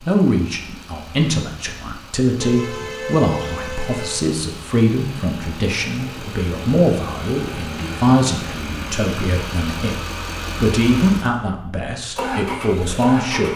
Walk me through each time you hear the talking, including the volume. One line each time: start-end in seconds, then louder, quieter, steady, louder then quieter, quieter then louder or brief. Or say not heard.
0.0-9.9 steady
10.6-13.5 brief.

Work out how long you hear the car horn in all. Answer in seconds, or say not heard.
2 s.